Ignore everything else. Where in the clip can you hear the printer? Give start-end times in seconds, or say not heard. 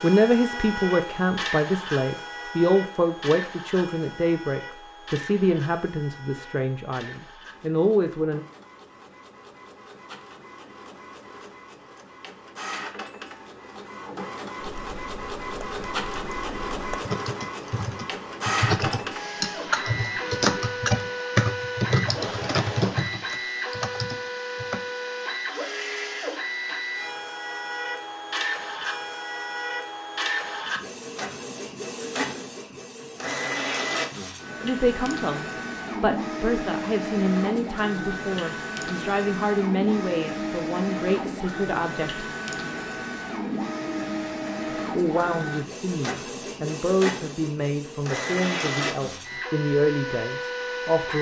0.0-51.1.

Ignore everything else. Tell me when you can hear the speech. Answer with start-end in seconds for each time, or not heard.
0.0-8.4, 34.6-42.2, 44.8-51.1.